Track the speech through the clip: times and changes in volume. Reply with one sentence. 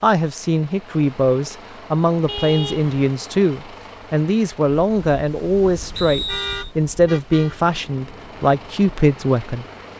The speech can be heard from 0.0 to 9.7 s, at a steady volume.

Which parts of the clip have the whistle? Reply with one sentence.
You can hear the whistle from 6.0 to 6.7 s.